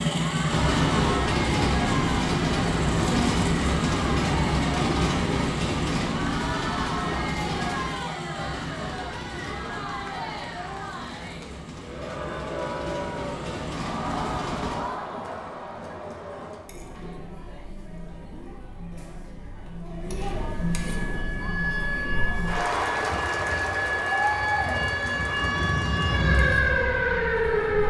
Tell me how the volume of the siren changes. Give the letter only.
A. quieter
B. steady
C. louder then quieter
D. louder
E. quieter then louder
D.